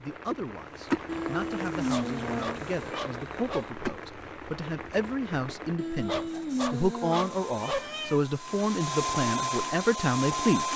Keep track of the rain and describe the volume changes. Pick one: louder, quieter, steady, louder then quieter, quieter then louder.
quieter.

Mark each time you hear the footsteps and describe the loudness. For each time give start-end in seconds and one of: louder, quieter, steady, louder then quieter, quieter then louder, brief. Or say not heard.
not heard.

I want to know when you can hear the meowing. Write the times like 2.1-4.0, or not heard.
1.1-3.0, 5.8-8.2.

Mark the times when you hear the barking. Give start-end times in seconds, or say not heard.
1.8-3.7, 6.0-7.9.